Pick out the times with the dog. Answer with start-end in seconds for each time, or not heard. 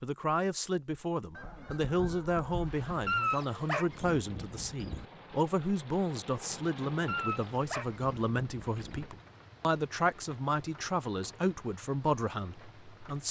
3.0-5.0, 7.0-9.1.